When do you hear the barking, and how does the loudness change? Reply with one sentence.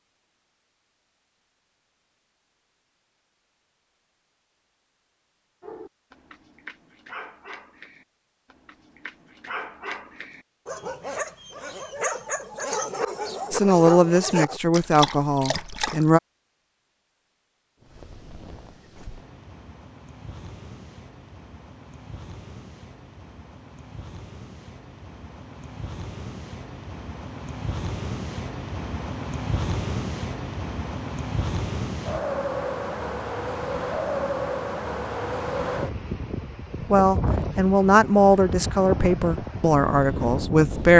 The barking can be heard from 5.6 to 16.1 s, getting louder.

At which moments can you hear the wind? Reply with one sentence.
You can hear the wind from 17.8 to 40.9 s.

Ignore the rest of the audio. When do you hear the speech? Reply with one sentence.
You can hear the speech from 13.5 to 16.2 s and from 36.9 to 40.9 s.